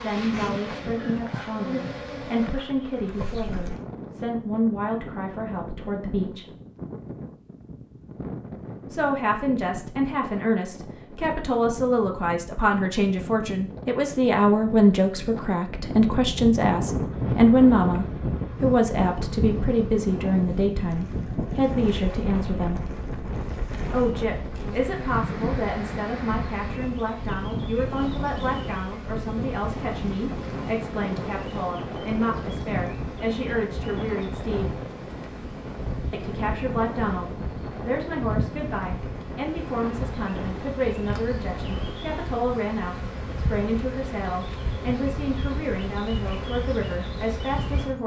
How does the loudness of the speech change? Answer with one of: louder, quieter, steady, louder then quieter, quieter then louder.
louder then quieter.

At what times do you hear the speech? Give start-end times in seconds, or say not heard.
0.0-6.5, 8.9-22.8, 23.9-34.8, 36.1-48.0.